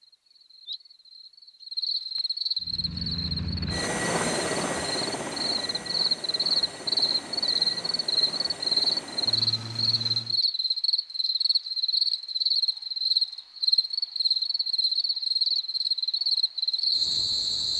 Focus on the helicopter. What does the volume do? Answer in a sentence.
The loudness of the helicopter goes down.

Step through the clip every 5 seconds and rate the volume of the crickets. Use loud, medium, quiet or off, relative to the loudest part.
medium, loud, loud, loud.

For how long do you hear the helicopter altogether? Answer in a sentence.
The helicopter can be heard for 8 seconds in total.